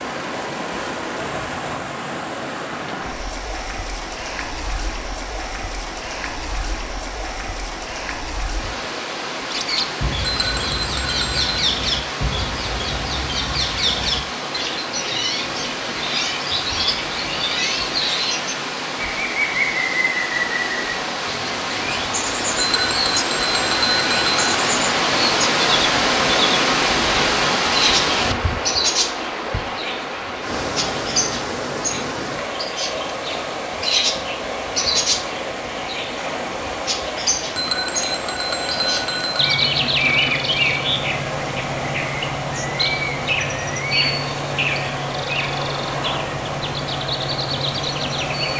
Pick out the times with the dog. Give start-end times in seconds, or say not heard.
not heard.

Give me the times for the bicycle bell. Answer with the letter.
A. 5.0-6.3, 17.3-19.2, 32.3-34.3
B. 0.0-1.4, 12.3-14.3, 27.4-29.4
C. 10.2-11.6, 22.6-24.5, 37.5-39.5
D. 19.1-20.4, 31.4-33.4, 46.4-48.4
C.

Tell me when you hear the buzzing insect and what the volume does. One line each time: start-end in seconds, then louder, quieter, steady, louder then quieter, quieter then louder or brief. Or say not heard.
not heard.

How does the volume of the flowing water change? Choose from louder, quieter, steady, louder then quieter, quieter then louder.
louder then quieter.